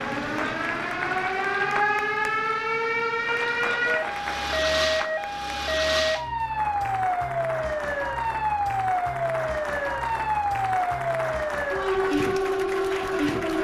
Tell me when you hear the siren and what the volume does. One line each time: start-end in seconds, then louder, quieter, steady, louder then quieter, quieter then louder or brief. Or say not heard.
0.0-13.5 steady.